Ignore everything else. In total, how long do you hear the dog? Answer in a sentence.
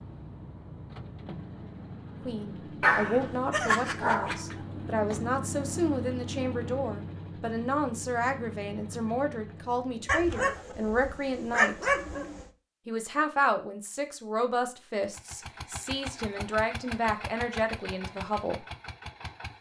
The dog can be heard for 4 seconds in total.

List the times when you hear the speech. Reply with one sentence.
The speech can be heard from 2.2 to 11.9 s and from 12.8 to 18.6 s.